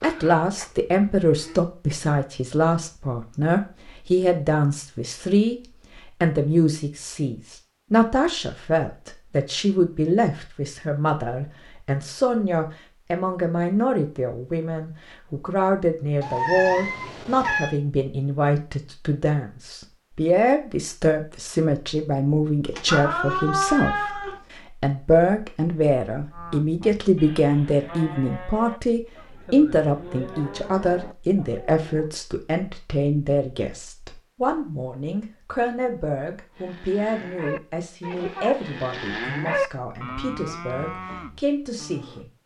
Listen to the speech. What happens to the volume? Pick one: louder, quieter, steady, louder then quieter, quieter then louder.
quieter.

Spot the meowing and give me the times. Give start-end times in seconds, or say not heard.
16.2-17.8, 22.7-24.4.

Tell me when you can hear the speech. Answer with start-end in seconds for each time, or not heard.
0.0-42.3.